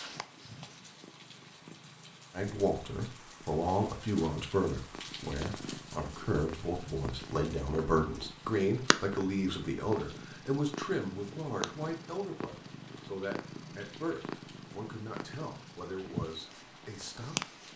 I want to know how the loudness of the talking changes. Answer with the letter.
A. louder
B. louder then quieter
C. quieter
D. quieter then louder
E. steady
C.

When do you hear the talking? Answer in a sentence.
The talking can be heard from 2.3 to 17.7 s.